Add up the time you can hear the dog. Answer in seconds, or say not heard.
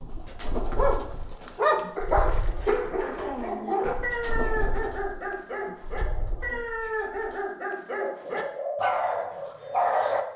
10 s.